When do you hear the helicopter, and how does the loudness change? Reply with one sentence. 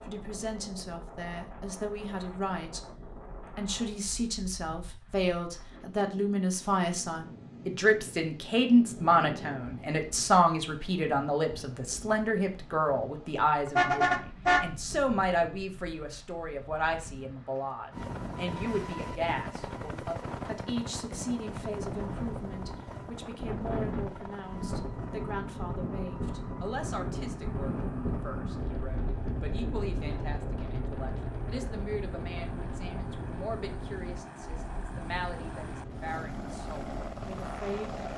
You can hear the helicopter from 17.9 to 38.1 s, getting quieter then louder.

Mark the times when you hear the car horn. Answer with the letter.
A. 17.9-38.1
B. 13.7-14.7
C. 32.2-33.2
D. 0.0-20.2
B.